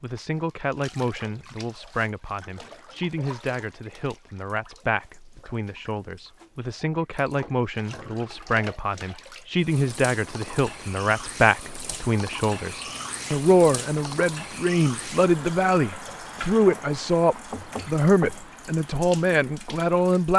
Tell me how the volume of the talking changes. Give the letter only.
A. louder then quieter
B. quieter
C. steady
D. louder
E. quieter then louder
D.